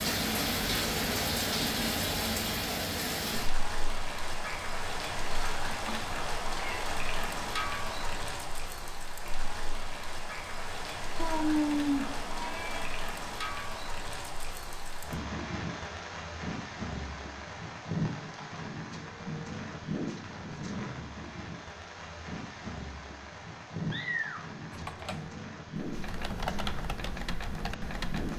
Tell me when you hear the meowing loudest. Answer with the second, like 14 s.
12 s.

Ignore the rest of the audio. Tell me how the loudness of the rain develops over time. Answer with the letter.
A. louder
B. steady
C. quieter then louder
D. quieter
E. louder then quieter
D.